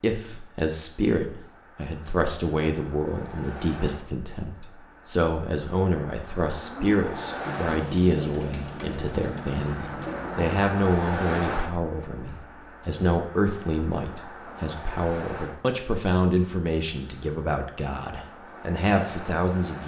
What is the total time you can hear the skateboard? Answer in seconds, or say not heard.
not heard.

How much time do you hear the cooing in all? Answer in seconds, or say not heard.
4 s.